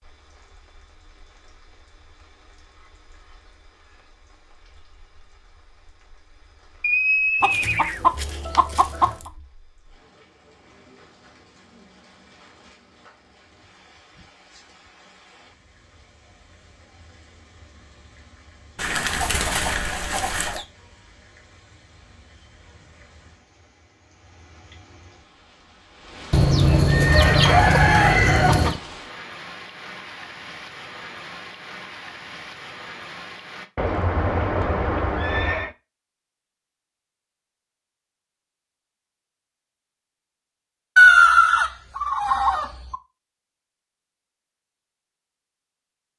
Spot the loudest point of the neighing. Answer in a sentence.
The loudest moment of the neighing is at 7 seconds.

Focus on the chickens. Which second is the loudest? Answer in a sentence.
The volume of the chickens peaks at 41 seconds.